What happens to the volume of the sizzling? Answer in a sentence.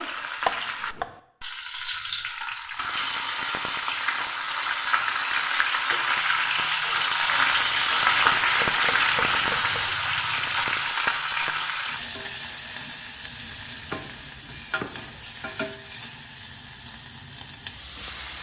The loudness of the sizzling goes up, then down.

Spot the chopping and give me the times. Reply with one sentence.
The chopping can be heard from 0.5 to 1.1 s, from 8.2 to 9.9 s and from 13.8 to 15.2 s.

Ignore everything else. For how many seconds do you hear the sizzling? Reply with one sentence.
The sizzling can be heard for 18 seconds in total.